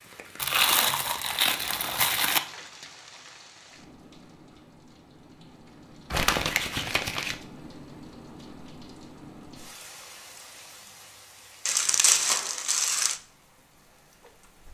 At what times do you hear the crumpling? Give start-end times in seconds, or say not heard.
0.3-2.4, 6.1-7.3, 11.7-13.2.